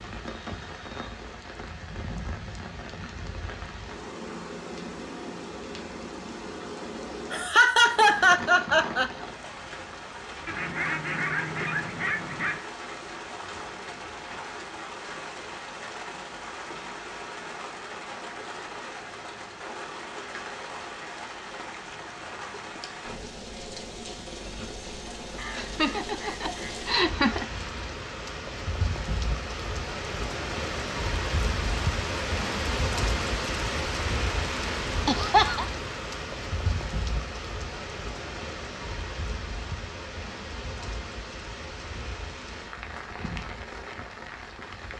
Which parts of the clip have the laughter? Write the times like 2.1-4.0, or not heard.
7.3-9.1, 25.6-27.4, 35.0-35.6.